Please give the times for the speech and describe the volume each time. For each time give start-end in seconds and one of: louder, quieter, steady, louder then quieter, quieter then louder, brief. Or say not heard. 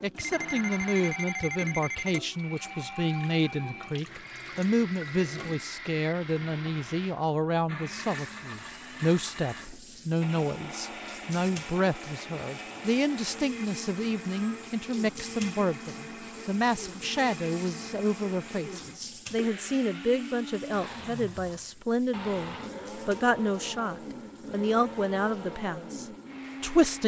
0.0-27.0 steady.